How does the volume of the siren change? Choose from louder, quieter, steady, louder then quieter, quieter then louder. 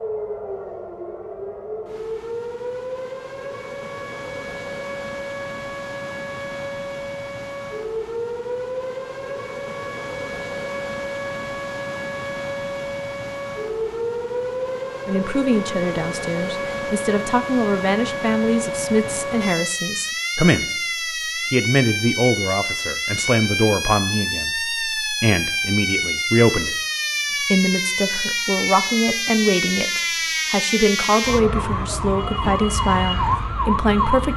louder.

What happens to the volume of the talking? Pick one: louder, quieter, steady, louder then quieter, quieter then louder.
steady.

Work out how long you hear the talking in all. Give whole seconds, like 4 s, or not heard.
18 s.